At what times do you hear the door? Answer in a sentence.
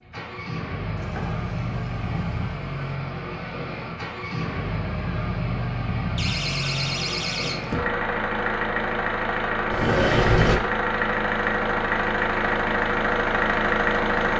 You can hear the door from 0.9 to 3.0 s, from 6.2 to 7.9 s and from 9.7 to 10.6 s.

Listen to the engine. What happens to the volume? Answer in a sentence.
The loudness of the engine goes up.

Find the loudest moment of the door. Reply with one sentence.
The loudest moment of the door is at 10 seconds.